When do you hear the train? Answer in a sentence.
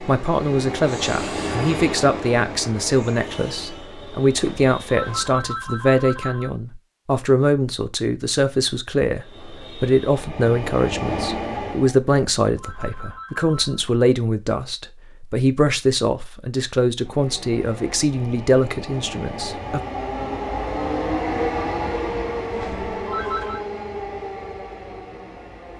You can hear the train from 0.0 to 5.3 s, from 9.1 to 12.0 s and from 16.9 to 25.7 s.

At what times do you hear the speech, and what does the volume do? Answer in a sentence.
The speech can be heard from 0.0 to 19.8 s, at a steady volume.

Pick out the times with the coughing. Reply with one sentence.
You can't hear the coughing here.